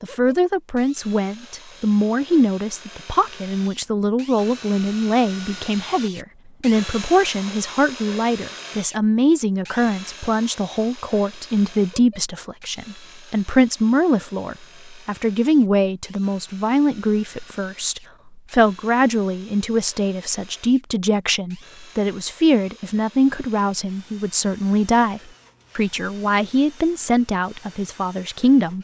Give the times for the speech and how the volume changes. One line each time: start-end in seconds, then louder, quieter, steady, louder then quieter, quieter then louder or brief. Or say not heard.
0.0-28.7 steady.